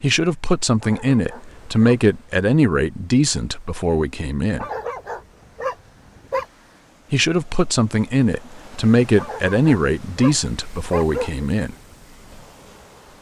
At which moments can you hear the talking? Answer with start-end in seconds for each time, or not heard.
0.0-4.7, 7.1-11.8.